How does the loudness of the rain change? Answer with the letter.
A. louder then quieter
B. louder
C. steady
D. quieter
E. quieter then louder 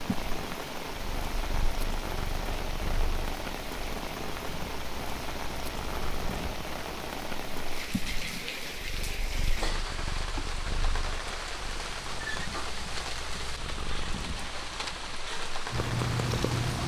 C.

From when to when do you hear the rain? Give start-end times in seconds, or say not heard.
0.0-16.8.